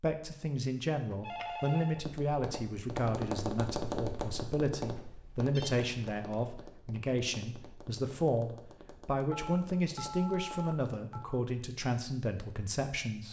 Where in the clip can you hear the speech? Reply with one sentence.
You can hear the speech from 0.0 to 13.2 s.